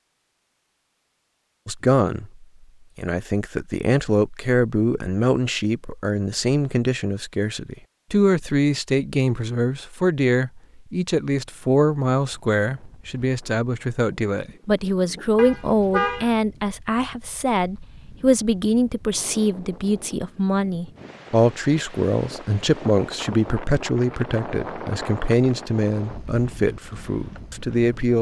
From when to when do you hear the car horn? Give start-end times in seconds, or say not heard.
15.3-16.3.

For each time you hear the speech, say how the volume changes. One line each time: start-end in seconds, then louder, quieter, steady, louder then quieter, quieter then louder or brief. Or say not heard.
1.6-28.1 steady.